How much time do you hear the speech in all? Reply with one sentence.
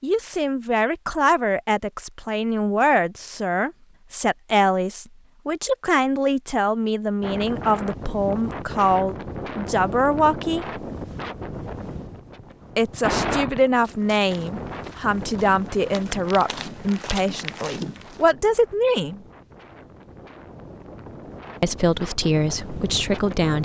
The speech can be heard for 19 seconds in total.